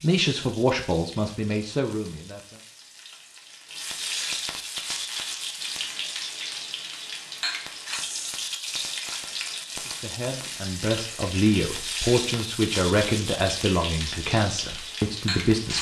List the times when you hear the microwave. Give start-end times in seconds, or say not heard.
not heard.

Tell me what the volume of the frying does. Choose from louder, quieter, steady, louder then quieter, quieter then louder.
louder.